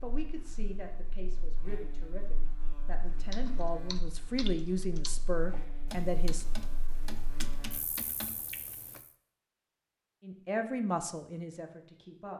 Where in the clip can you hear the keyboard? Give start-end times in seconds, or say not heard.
3.0-9.0.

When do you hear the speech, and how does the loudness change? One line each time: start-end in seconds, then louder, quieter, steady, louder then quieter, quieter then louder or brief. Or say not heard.
0.0-6.5 louder
10.2-12.3 brief.